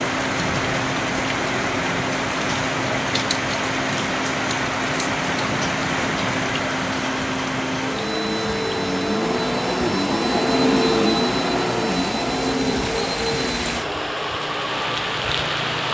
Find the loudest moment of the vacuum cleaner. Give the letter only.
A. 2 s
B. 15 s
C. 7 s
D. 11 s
D.